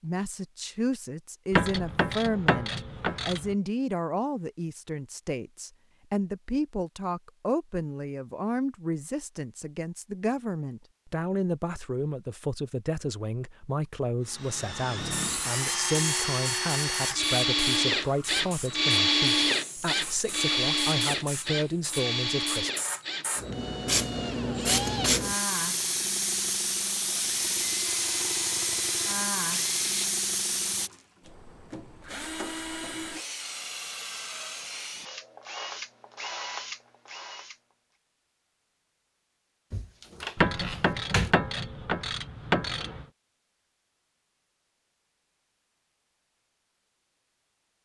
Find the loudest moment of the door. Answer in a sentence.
The volume of the door peaks at 41 seconds.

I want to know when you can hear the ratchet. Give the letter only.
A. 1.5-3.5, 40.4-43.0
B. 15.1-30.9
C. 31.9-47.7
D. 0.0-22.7
A.